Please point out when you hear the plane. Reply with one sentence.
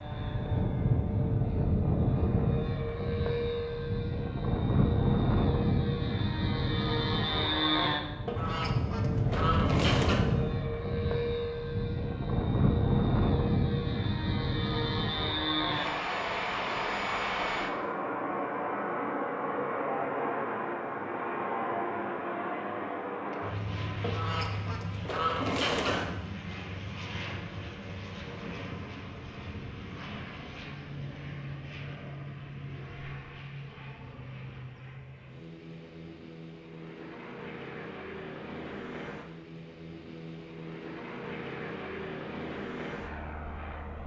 The plane can be heard from 0.0 to 44.0 s.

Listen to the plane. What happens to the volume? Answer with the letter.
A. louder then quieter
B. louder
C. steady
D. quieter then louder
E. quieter
E.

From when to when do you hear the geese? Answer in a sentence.
You can hear the geese from 8.2 to 10.2 s and from 24.0 to 26.1 s.